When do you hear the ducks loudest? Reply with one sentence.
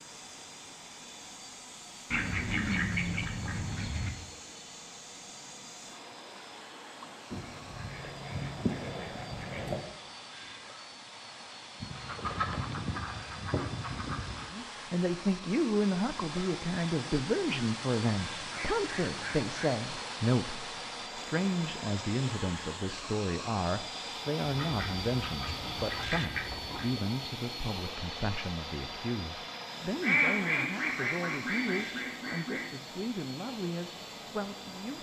The loudest moment of the ducks is at 30 seconds.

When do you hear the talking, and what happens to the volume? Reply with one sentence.
The talking can be heard from 14.5 to 34.9 s, getting quieter.